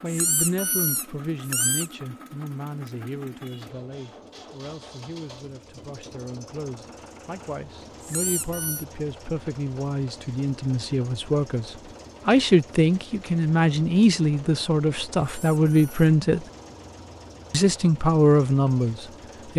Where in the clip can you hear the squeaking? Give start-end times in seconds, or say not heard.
0.1-1.9, 8.0-8.8, 15.2-15.9.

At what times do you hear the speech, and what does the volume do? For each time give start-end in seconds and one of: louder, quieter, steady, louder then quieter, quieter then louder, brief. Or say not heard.
0.0-16.4 quieter then louder
17.5-19.5 brief.